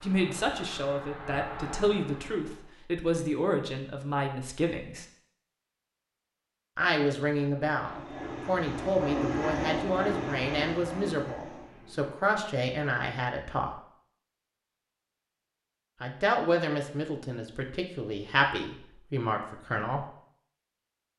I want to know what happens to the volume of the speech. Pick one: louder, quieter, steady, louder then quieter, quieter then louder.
steady.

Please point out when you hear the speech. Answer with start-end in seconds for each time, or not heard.
0.0-5.0, 6.8-13.7, 16.0-20.1.